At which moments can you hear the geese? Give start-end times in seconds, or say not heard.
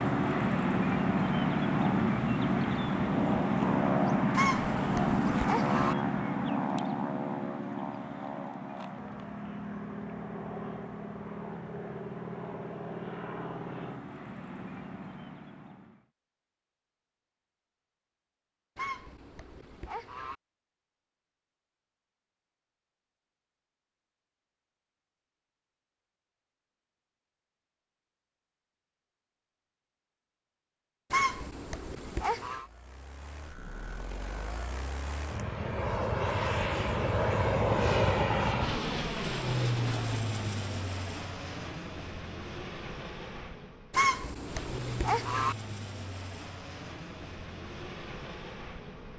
4.3-6.0, 18.8-20.4, 31.1-32.6, 43.9-45.5.